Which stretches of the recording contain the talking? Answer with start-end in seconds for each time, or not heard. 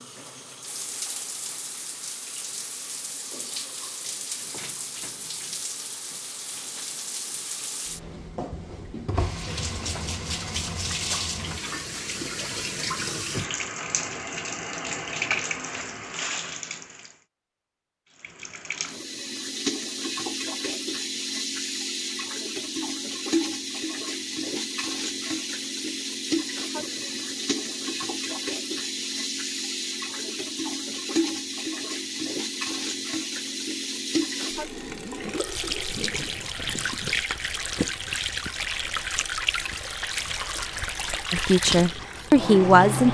41.3-43.1.